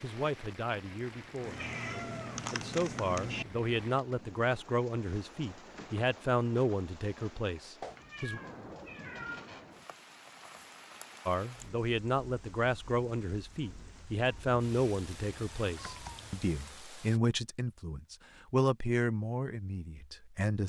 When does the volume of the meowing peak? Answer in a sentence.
The loudest moment of the meowing is at 3 seconds.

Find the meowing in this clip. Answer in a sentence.
The meowing can be heard from 1.4 to 3.5 s, from 7.8 to 9.5 s and from 14.2 to 16.4 s.